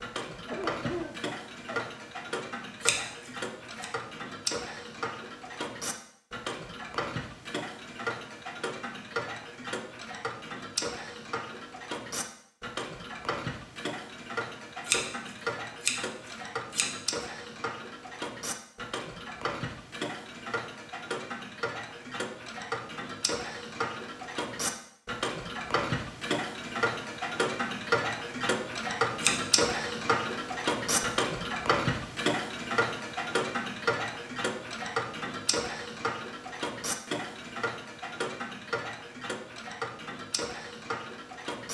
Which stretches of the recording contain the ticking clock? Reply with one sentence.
You can hear the ticking clock from 0.0 to 41.6 s.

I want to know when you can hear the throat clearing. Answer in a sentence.
The throat clearing can be heard from 0.5 to 1.9 s.